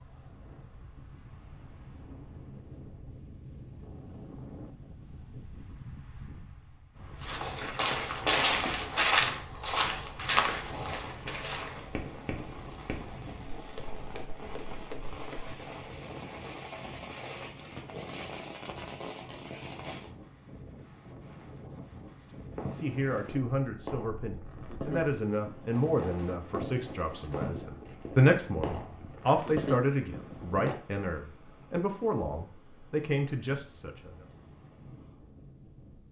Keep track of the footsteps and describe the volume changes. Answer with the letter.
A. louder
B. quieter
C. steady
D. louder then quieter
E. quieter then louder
B.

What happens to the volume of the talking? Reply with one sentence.
The volume of the talking goes up, then down.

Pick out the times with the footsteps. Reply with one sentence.
The footsteps can be heard from 7.2 to 15.6 s.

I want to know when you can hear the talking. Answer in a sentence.
The talking can be heard from 22.7 to 34.2 s.